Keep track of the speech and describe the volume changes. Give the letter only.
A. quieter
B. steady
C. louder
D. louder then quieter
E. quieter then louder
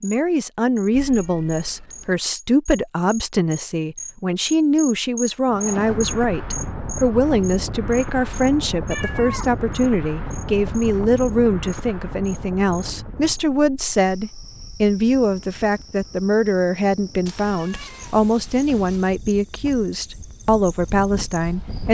B.